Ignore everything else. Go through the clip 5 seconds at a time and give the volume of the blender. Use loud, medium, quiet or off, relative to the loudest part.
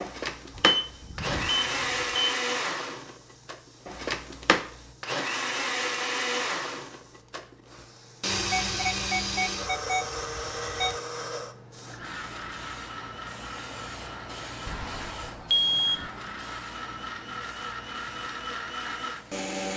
loud, loud, medium, medium.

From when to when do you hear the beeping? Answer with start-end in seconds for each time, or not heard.
0.6-2.1, 8.3-11.0, 14.7-16.1.